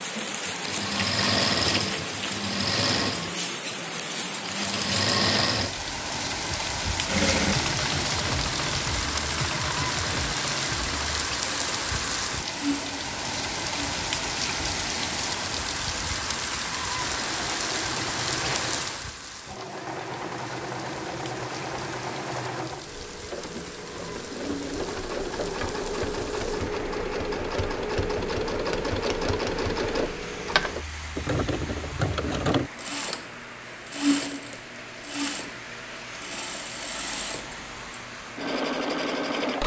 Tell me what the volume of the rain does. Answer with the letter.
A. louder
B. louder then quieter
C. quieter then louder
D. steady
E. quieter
E.